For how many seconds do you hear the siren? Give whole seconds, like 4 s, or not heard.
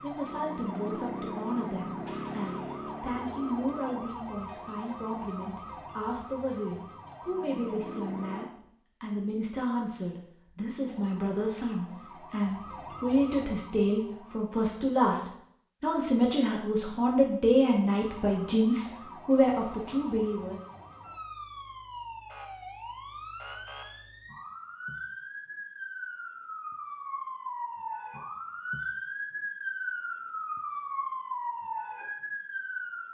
27 s.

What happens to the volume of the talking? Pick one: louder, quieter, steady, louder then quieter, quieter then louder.
louder.